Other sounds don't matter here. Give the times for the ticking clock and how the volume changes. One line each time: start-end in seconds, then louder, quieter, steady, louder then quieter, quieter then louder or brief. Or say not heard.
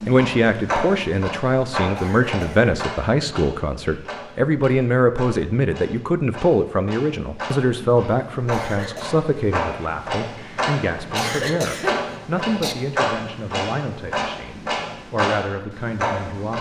0.0-16.5 quieter then louder.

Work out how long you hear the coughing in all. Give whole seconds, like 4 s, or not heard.
3 s.